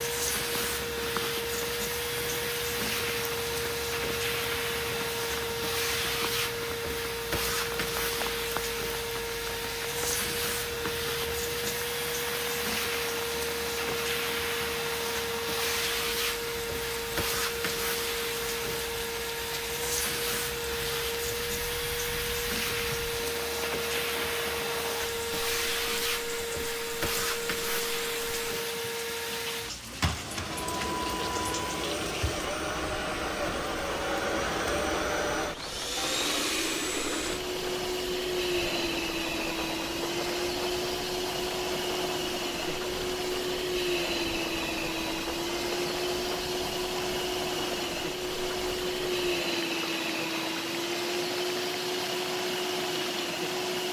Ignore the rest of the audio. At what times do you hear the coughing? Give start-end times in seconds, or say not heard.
not heard.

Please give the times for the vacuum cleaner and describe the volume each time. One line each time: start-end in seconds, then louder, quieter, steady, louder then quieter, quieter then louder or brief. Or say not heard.
0.0-53.8 steady.